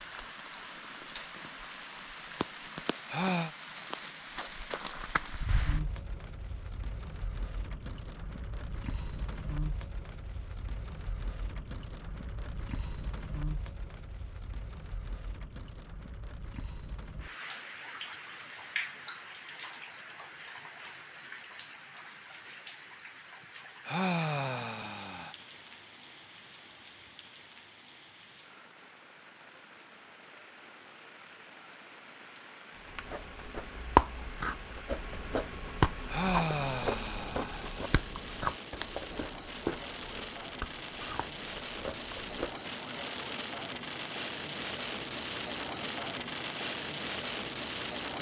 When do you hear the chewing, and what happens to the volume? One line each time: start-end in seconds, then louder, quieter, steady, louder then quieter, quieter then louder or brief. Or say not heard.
32.9-42.6 quieter.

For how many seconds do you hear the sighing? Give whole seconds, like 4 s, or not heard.
4 s.